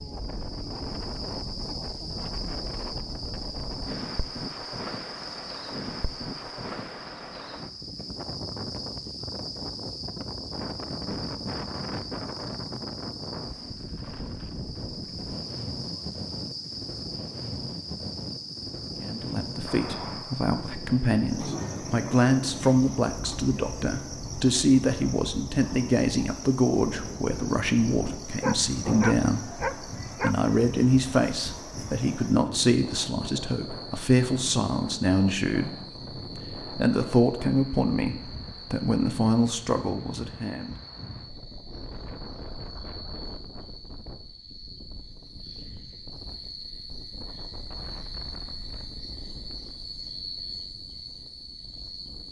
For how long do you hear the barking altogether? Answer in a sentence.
The barking can be heard for 2 seconds in total.